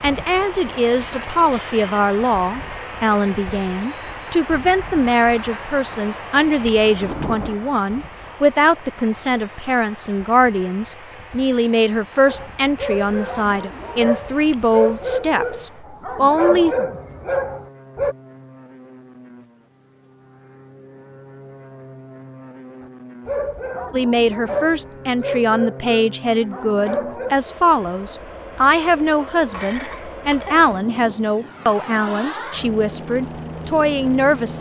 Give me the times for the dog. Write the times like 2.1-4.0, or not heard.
12.2-18.1, 23.2-27.4.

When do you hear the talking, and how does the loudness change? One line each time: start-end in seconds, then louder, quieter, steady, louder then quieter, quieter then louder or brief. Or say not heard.
0.0-16.8 steady
23.9-34.5 steady.